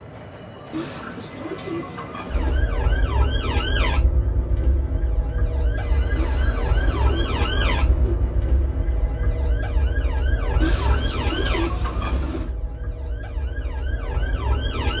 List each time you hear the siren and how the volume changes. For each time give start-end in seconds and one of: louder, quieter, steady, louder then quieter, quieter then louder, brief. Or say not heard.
2.3-14.9 quieter.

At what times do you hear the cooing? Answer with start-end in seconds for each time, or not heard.
0.7-2.6, 6.2-8.2, 10.6-12.6.